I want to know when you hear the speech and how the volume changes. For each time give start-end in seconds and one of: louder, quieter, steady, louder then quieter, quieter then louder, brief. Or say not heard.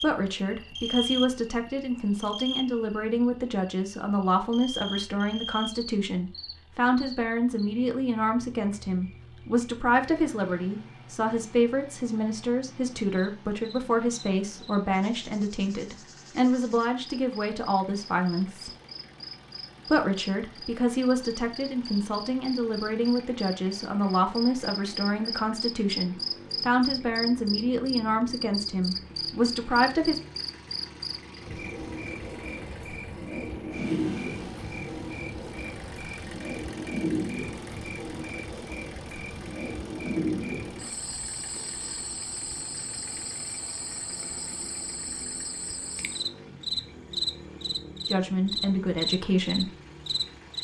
0.0-18.7 steady
19.9-30.2 steady
48.0-49.7 brief.